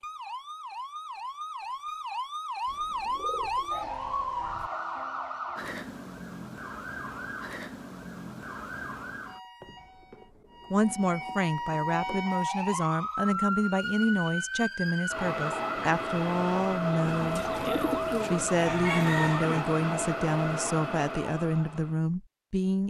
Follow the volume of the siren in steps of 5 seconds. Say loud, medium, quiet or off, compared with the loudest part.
loud, medium, loud, loud, loud.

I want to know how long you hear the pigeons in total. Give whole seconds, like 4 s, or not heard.
7 s.